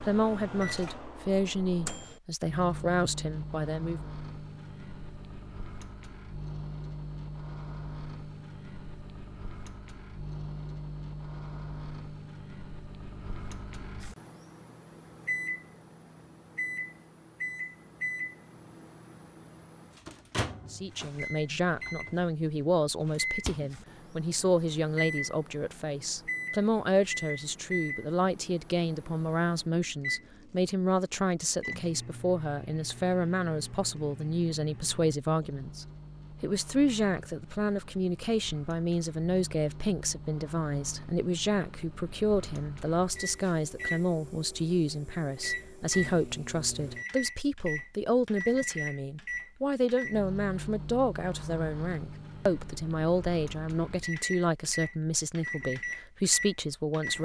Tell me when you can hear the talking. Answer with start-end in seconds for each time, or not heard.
0.1-4.1, 20.7-57.2.